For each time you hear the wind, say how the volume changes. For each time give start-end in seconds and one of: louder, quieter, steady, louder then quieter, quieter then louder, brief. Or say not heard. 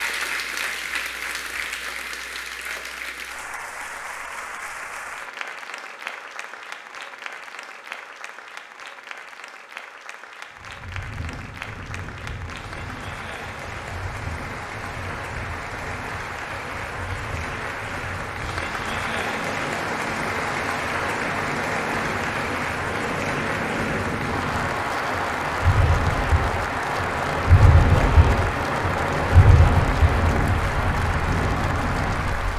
10.6-32.5 louder.